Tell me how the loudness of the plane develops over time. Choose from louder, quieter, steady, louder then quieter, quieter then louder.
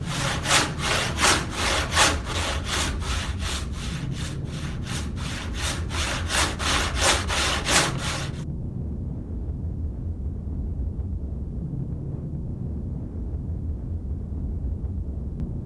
steady.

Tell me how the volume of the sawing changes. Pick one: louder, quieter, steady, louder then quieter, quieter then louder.
quieter then louder.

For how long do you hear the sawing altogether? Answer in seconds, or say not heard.
8 s.